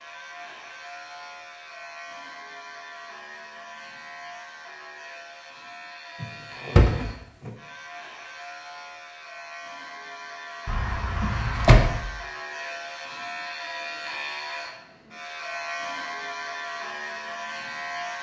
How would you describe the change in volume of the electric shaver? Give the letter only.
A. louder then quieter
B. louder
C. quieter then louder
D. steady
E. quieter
B.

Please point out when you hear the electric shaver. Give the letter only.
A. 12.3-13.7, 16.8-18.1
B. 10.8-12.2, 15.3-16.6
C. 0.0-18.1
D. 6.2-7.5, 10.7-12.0
C.